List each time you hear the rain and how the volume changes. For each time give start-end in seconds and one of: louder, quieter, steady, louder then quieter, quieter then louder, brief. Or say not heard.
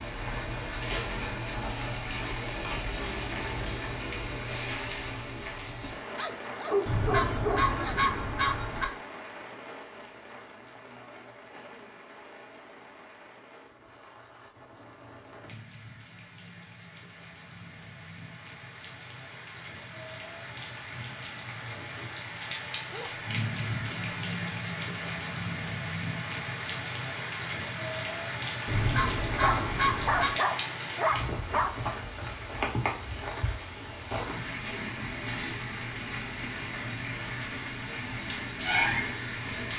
0.0-39.7 quieter then louder.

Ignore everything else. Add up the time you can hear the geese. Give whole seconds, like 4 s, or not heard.
4 s.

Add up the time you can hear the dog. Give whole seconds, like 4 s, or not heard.
6 s.